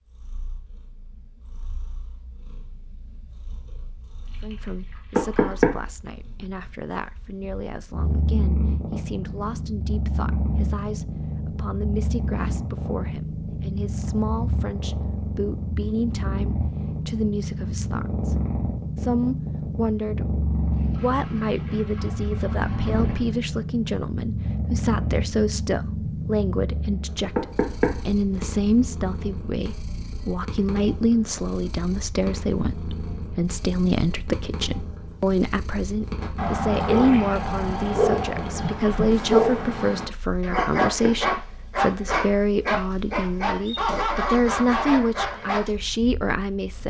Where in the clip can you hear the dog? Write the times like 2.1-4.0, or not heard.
36.2-45.7.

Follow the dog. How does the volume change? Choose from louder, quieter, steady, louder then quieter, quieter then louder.
steady.